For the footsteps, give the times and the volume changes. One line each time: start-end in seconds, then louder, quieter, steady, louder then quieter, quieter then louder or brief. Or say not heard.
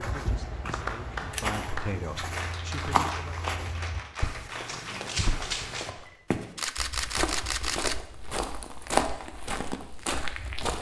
0.0-10.7 louder.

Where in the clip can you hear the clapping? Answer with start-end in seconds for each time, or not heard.
0.7-6.0.